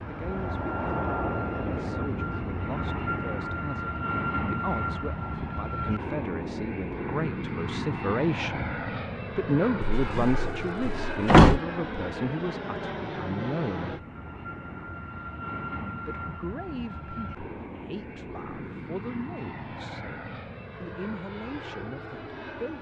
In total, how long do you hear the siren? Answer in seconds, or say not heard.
not heard.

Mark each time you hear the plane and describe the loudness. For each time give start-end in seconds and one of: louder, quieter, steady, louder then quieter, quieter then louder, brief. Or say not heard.
0.0-22.7 quieter.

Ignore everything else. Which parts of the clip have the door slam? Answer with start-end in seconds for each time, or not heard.
9.8-11.6.